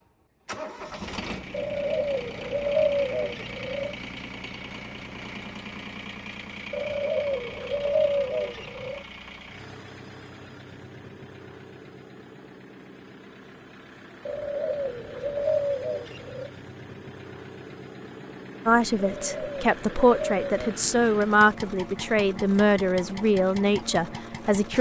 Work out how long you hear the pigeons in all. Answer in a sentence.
The pigeons can be heard for 9 seconds in total.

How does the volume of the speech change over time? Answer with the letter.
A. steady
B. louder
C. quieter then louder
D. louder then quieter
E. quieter
A.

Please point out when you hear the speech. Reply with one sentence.
The speech can be heard from 18.6 to 24.7 s.